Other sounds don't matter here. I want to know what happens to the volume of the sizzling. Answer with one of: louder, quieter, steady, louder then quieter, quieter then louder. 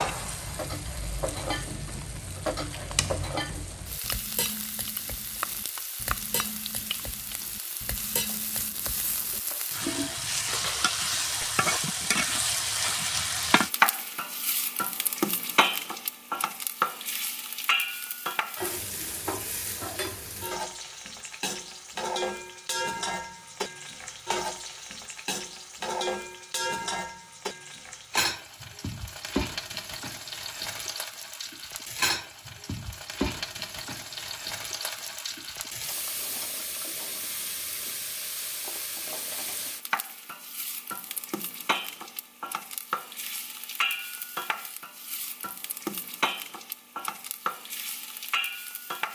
louder then quieter.